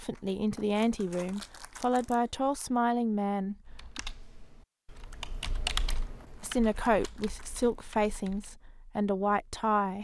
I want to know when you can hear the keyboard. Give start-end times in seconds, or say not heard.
3.6-8.4.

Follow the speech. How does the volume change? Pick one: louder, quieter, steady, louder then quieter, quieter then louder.
steady.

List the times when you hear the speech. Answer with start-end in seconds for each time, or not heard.
0.0-4.0, 6.4-9.9.